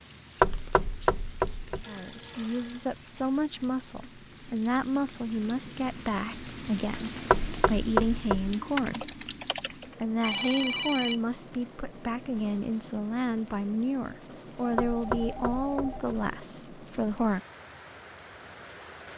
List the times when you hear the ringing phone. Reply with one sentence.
You can hear the ringing phone from 1.8 to 2.9 s, from 10.2 to 11.2 s and from 14.6 to 16.1 s.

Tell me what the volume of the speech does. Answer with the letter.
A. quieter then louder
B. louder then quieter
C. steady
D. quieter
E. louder
C.